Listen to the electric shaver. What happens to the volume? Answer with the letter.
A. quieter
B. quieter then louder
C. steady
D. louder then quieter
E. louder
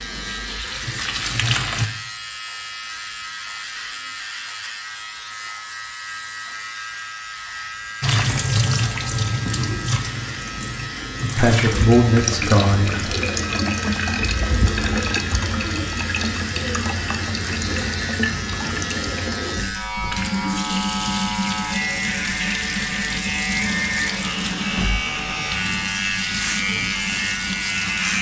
E.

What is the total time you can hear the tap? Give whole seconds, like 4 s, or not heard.
22 s.